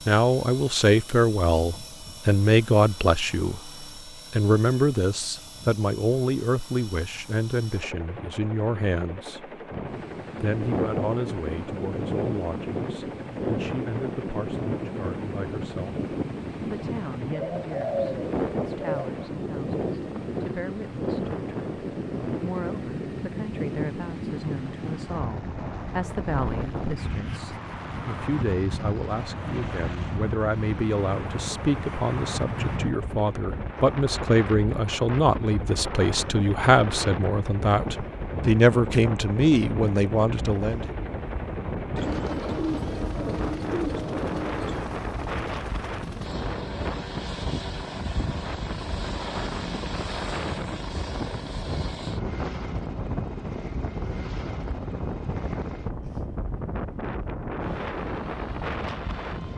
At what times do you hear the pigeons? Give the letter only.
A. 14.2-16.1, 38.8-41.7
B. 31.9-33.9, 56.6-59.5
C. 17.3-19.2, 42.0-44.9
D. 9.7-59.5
C.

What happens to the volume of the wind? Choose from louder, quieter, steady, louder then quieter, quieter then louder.
steady.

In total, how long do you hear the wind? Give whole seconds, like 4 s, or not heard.
50 s.